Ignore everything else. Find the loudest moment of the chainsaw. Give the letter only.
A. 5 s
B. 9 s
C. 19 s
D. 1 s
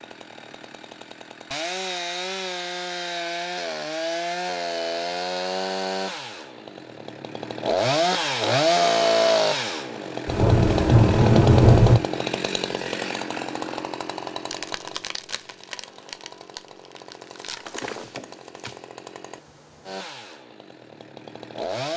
B.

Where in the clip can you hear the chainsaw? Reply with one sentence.
The chainsaw can be heard from 0.0 to 21.9 s.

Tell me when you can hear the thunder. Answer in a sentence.
The thunder can be heard from 10.2 to 11.9 s.